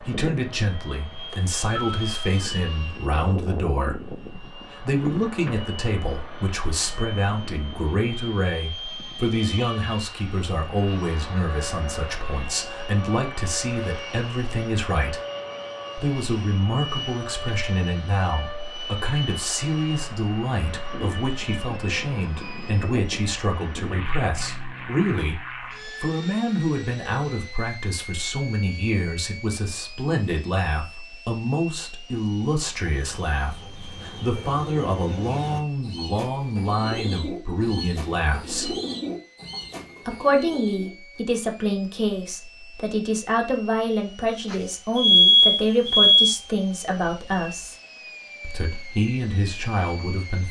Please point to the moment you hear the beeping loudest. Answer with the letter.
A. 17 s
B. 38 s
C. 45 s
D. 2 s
C.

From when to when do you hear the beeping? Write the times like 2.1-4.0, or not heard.
1.3-2.0, 44.5-46.4.